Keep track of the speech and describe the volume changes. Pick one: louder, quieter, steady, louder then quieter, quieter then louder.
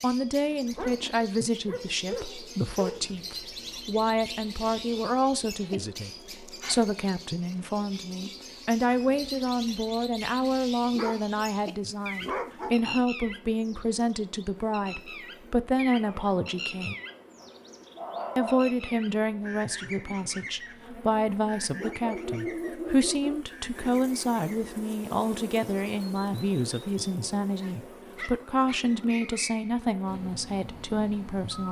steady.